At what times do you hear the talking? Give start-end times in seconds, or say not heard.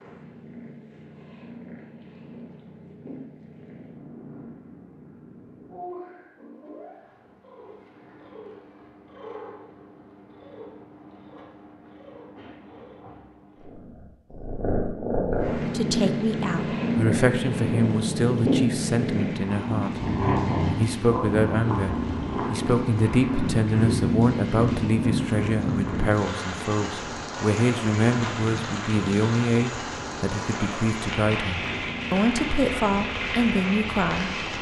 15.6-20.0, 20.7-34.4.